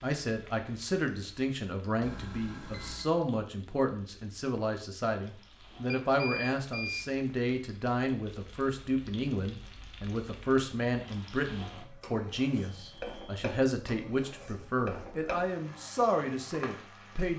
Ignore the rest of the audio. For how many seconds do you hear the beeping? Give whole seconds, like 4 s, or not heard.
3 s.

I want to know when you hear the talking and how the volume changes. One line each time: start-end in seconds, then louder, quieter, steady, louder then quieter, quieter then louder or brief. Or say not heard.
0.0-17.3 steady.